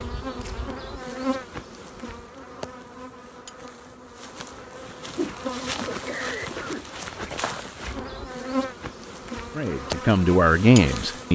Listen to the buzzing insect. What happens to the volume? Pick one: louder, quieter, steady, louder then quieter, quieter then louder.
quieter then louder.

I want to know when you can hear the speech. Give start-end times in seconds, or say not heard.
9.5-11.3.